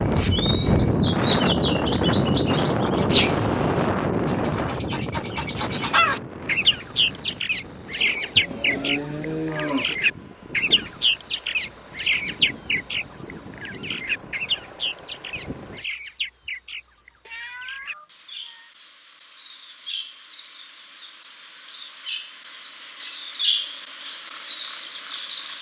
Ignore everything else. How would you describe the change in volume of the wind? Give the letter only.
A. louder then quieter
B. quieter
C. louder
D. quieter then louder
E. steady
B.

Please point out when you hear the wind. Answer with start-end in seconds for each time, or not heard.
0.0-15.8.